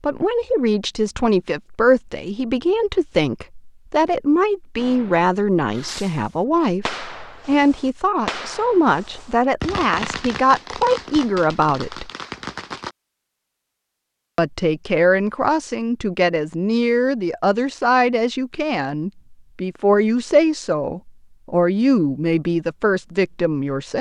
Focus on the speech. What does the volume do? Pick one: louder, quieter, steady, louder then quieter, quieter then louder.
steady.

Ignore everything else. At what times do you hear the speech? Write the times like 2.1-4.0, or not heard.
0.0-12.1, 14.3-23.9.